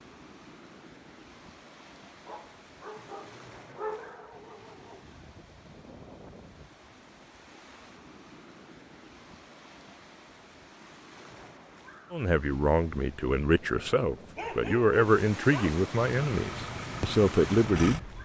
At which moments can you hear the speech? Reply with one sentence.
You can hear the speech from 12.1 to 18.2 s.